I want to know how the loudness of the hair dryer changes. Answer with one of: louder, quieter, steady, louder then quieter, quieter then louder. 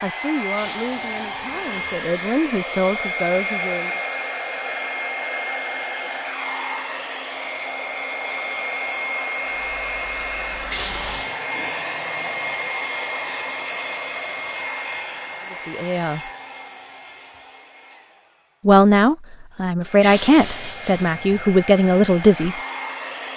quieter.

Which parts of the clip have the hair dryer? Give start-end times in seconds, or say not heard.
0.0-23.3.